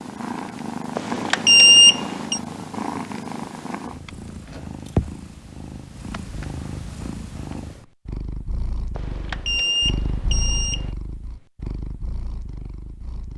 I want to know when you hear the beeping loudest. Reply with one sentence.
The loudest moment of the beeping is at 2 seconds.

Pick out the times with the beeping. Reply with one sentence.
The beeping can be heard from 0.9 to 2.4 s and from 8.9 to 10.9 s.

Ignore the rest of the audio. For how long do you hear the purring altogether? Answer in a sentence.
The purring can be heard for 13 seconds in total.